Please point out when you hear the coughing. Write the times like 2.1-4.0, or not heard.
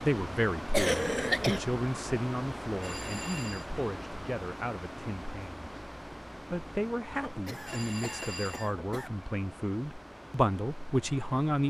0.7-1.6, 7.2-9.1.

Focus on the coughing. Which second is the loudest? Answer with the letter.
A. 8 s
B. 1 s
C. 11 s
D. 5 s
B.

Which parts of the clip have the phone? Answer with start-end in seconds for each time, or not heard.
2.8-3.7, 7.7-8.7.